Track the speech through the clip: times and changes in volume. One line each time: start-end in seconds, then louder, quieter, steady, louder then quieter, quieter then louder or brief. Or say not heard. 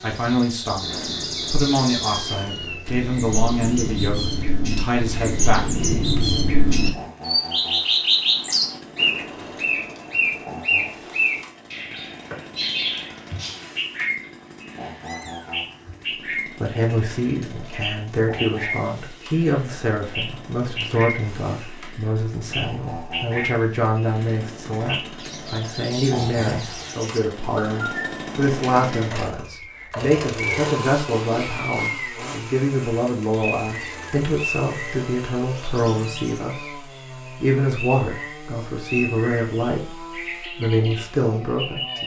0.0-5.8 steady
16.6-42.0 steady.